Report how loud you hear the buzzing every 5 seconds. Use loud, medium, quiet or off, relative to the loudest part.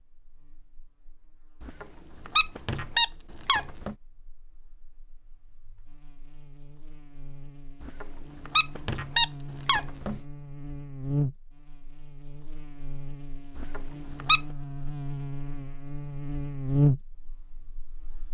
quiet, quiet, medium, loud.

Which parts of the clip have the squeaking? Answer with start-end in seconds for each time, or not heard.
1.6-4.0, 7.8-10.2, 13.6-14.4.